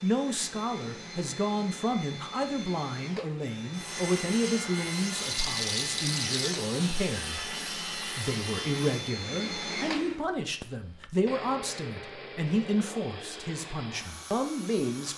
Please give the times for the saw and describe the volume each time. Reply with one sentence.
You can hear the saw from 3.7 to 9.2 s, at a steady volume.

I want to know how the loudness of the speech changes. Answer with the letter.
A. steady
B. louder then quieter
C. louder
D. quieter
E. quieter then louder
A.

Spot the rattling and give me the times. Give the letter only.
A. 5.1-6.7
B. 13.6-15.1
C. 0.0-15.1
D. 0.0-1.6
A.